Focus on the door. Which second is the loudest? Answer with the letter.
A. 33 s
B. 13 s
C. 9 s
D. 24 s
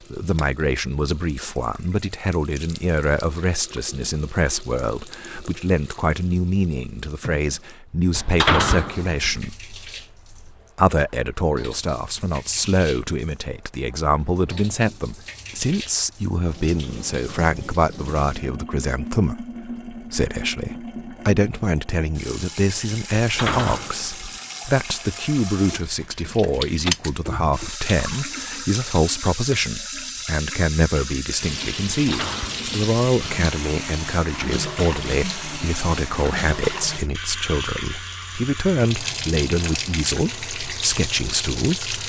C.